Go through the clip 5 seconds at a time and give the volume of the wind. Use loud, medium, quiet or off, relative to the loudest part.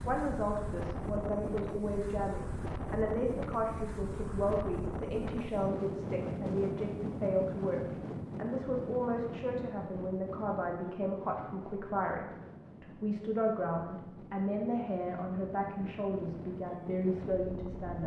loud, loud, medium, medium.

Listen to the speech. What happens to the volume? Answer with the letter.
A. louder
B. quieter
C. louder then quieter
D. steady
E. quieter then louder
D.